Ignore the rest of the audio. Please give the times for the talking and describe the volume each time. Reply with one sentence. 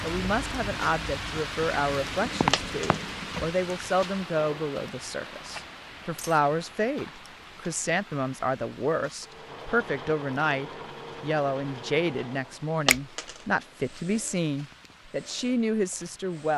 You can hear the talking from 0.0 to 16.5 s, at a steady volume.